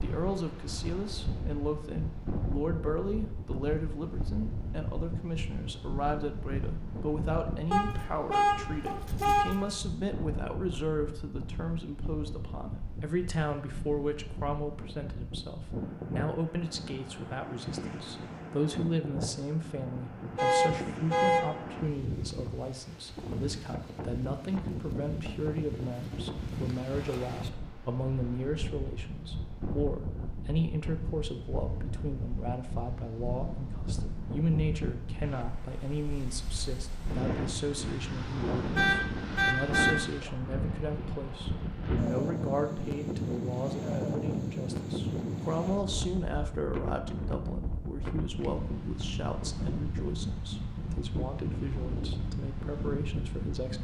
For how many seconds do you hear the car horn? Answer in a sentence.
You can hear the car horn for 4 seconds altogether.